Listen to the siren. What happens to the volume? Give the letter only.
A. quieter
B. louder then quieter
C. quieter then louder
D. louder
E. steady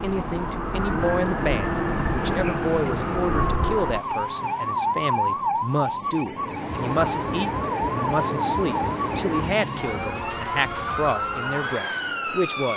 E.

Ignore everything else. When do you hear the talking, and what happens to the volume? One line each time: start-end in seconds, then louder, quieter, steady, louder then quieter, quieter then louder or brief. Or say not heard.
0.0-12.7 steady.